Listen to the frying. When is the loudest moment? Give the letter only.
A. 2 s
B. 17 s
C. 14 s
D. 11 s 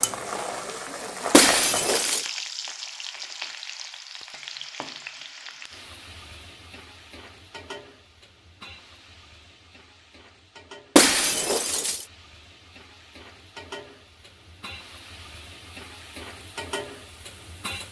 A.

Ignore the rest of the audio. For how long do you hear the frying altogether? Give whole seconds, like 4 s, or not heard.
18 s.